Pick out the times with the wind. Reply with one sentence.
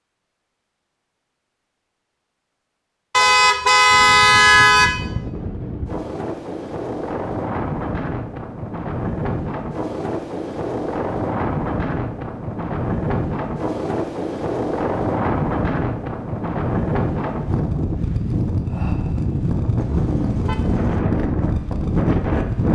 You can hear the wind from 3.9 to 22.7 s.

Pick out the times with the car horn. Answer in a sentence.
You can hear the car horn from 3.1 to 5.0 s and from 19.8 to 21.0 s.